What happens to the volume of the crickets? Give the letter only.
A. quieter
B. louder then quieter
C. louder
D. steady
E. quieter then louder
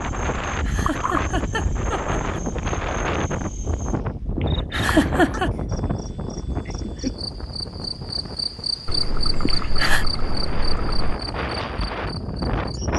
B.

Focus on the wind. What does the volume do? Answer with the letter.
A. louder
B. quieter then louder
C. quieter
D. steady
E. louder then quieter
B.